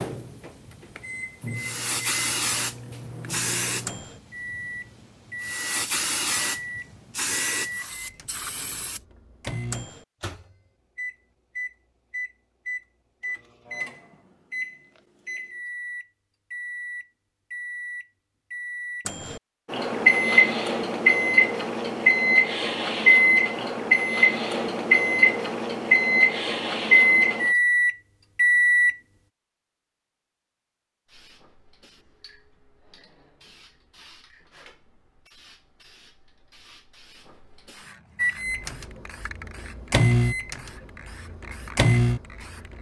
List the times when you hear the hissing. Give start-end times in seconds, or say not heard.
0.0-9.0, 31.1-42.7.